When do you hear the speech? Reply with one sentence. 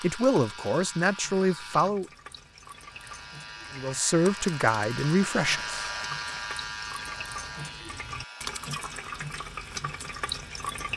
The speech can be heard from 0.0 to 2.1 s and from 3.7 to 5.8 s.